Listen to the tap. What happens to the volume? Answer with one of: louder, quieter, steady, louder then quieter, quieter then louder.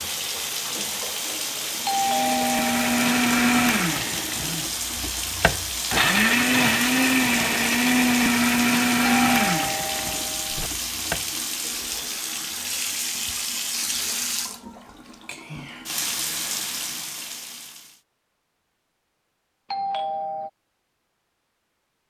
steady.